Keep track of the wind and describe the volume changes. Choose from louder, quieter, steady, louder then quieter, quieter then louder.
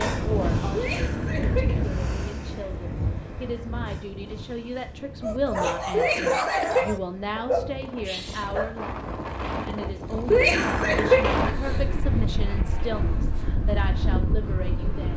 quieter then louder.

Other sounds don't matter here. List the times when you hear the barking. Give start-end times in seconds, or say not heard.
5.2-8.8.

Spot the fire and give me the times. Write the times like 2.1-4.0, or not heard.
not heard.